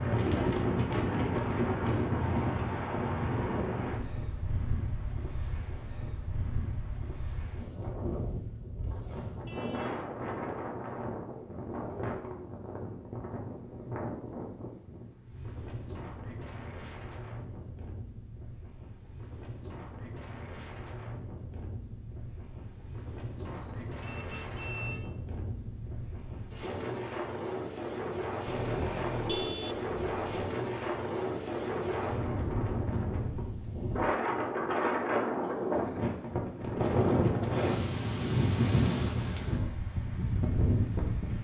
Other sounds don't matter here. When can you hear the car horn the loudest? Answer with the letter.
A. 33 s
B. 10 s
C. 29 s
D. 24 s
C.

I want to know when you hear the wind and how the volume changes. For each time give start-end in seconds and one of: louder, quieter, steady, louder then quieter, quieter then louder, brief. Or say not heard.
0.0-41.3 quieter then louder.